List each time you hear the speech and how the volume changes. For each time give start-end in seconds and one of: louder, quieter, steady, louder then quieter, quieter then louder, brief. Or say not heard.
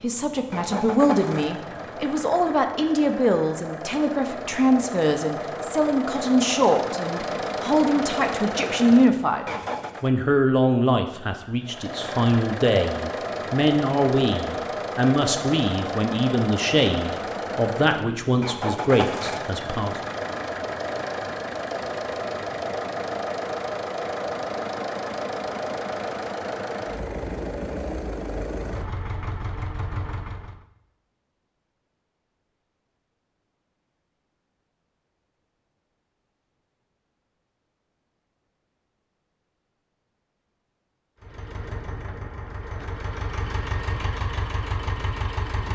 0.0-19.9 steady.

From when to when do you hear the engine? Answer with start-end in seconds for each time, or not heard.
0.0-10.1, 11.6-30.6, 41.2-45.7.